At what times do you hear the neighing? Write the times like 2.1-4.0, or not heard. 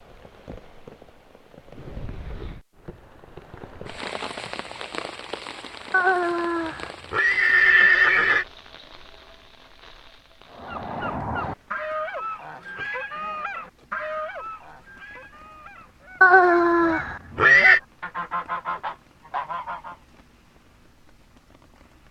5.9-8.4, 16.2-17.8.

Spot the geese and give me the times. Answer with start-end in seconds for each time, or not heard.
10.5-19.9.